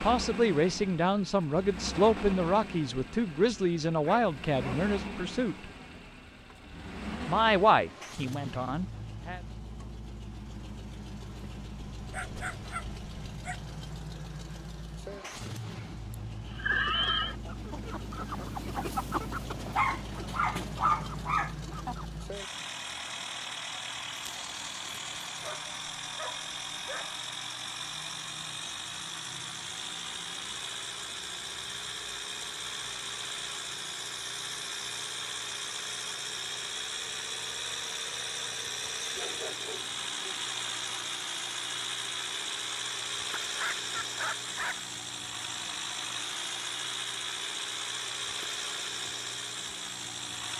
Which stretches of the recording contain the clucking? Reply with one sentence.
The clucking can be heard from 16.5 to 22.2 s.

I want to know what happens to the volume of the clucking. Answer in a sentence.
The loudness of the clucking goes up, then down.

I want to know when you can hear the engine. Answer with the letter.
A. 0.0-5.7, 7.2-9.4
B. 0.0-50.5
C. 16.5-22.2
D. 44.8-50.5
B.